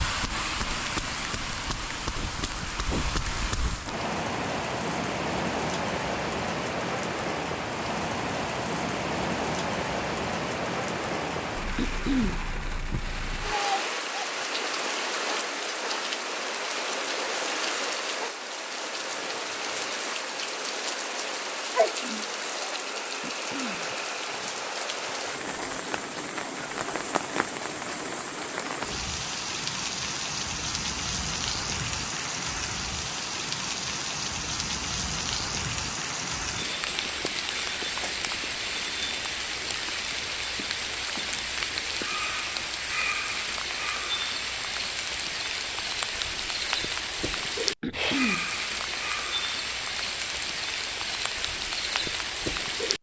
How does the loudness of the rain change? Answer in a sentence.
The volume of the rain stays about the same.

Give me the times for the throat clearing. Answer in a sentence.
You can hear the throat clearing from 11.8 to 12.4 s, from 23.2 to 23.9 s and from 47.8 to 48.5 s.